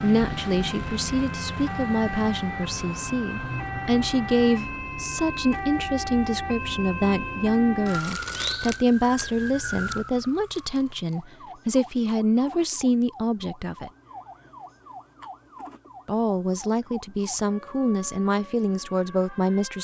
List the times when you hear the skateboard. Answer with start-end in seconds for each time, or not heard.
not heard.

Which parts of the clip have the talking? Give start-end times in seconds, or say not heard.
0.0-13.9, 16.1-19.7.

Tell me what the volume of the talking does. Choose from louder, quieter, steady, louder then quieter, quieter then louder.
steady.